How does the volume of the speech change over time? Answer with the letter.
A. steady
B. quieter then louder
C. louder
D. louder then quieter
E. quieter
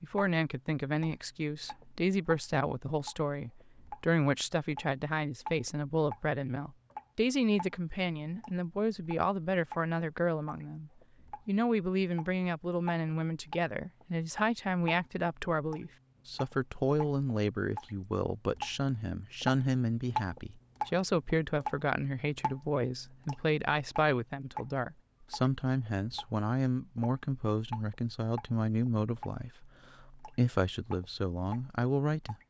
A.